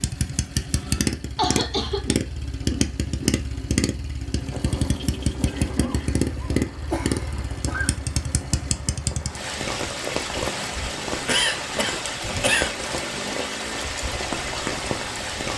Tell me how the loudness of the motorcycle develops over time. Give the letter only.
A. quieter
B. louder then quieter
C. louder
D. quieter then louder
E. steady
A.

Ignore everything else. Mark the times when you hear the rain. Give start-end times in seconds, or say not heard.
4.3-15.5.